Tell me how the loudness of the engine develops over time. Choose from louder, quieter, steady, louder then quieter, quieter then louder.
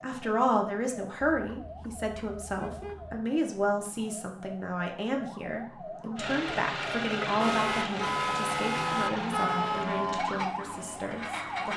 quieter.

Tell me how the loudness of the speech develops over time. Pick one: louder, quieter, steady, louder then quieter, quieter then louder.
quieter.